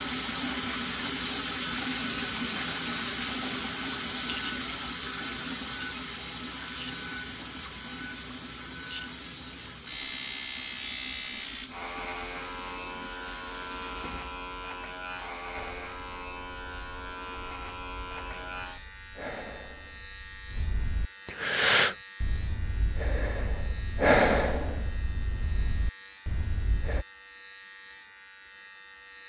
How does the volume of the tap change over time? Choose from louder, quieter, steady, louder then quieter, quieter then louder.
quieter.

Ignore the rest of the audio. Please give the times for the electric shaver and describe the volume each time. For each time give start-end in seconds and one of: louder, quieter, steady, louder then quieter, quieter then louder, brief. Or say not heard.
0.0-29.2 quieter.